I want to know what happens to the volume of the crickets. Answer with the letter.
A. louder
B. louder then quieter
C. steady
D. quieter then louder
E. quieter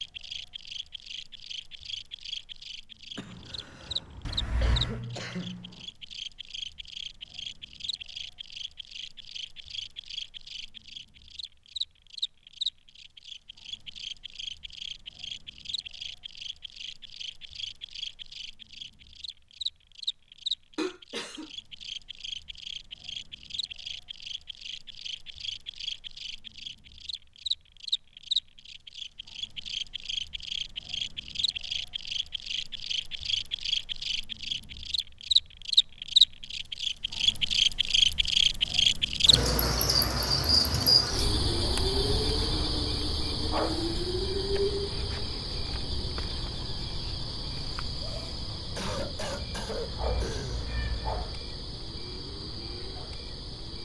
B.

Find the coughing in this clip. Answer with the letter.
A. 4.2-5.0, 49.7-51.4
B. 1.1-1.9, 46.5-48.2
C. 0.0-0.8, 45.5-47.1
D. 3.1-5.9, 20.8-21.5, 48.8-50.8
D.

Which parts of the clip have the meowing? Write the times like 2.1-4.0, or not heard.
4.2-5.0, 49.7-51.4.